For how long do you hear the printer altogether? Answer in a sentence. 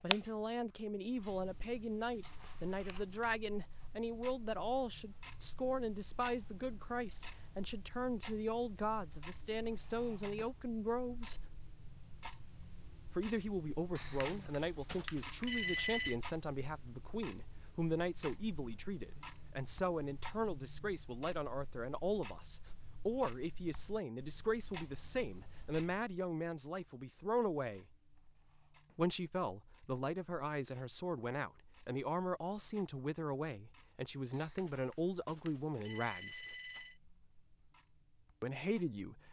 The printer can't be heard in this clip.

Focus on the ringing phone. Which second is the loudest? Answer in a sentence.
The loudest moment of the ringing phone is at 16 seconds.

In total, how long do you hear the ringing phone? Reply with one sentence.
The ringing phone can be heard for 5 seconds in total.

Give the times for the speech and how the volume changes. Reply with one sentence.
The speech can be heard from 0.0 to 11.4 s, at a steady volume; from 13.1 to 27.9 s, at a steady volume; from 28.9 to 36.5 s, at a steady volume; and briefly from 38.4 to 39.2 s.